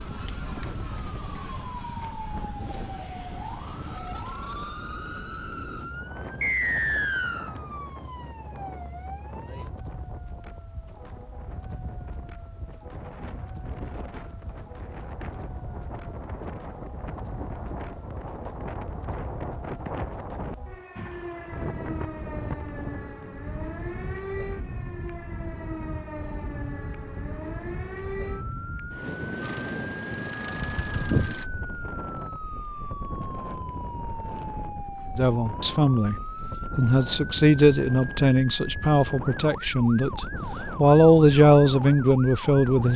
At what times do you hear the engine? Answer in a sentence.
You can hear the engine from 29.4 to 31.4 s.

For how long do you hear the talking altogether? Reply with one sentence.
You can hear the talking for 8 seconds altogether.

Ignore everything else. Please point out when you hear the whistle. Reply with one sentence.
The whistle can be heard from 6.4 to 7.5 s.